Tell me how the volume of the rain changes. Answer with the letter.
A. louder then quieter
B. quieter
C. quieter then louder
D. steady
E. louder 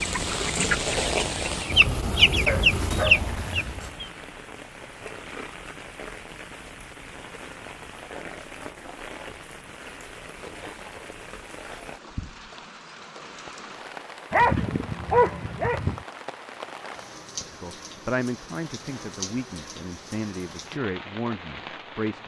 B.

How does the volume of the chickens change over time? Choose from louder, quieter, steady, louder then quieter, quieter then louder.
quieter then louder.